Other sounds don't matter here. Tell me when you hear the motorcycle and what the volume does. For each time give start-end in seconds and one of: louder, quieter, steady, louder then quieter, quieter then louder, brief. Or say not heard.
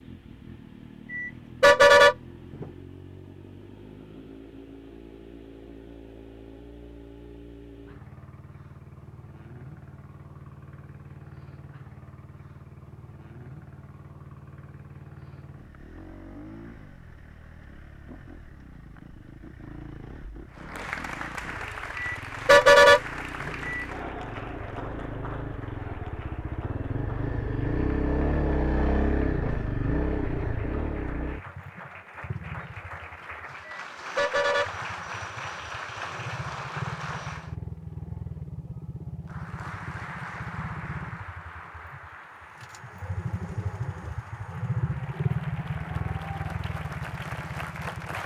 0.0-48.2 louder.